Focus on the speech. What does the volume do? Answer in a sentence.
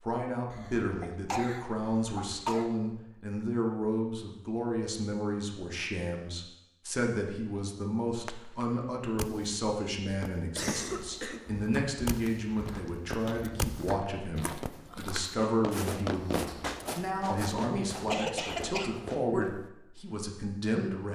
The volume of the speech stays about the same.